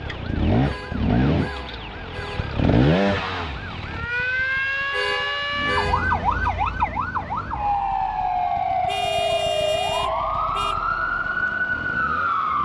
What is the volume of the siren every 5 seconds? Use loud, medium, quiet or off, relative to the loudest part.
medium, loud, loud.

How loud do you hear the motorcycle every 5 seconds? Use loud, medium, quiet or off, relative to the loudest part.
loud, quiet, quiet.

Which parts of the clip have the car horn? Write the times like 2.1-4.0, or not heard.
0.6-2.5, 4.9-6.3, 8.8-10.8.